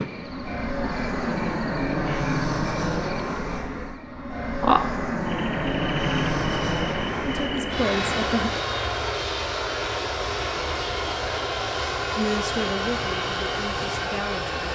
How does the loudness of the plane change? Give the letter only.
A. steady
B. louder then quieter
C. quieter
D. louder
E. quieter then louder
A.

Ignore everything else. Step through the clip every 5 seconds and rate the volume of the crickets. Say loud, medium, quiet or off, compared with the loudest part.
loud, loud, off.